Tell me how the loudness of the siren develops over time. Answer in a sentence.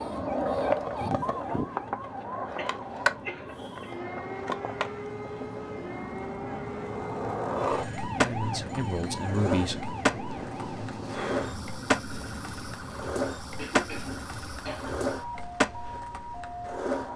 The loudness of the siren stays about the same.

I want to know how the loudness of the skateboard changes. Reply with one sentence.
The loudness of the skateboard goes down, then up.